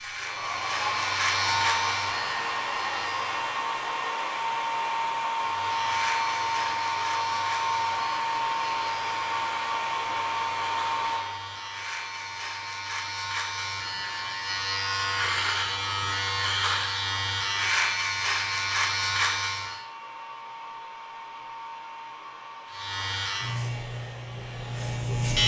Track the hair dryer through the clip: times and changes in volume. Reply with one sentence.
The hair dryer can be heard from 0.0 to 25.4 s, getting quieter.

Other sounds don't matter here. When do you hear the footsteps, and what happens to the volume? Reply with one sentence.
You can't hear the footsteps here.